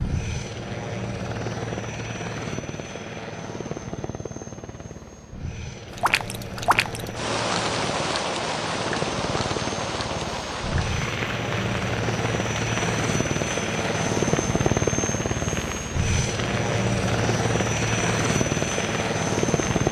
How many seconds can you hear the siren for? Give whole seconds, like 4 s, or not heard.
not heard.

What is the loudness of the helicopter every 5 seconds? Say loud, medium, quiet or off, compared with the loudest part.
medium, medium, loud, loud.